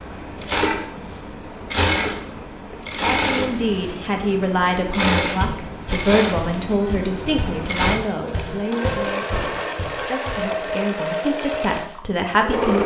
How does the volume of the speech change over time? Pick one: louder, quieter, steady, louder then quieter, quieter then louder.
quieter then louder.